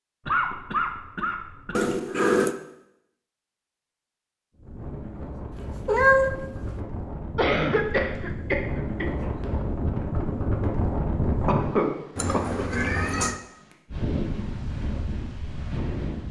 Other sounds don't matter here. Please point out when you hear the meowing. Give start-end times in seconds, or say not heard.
1.8-2.5, 5.5-6.8, 12.2-13.4.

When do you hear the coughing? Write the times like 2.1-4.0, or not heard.
0.2-1.9, 7.3-9.3, 11.4-12.7.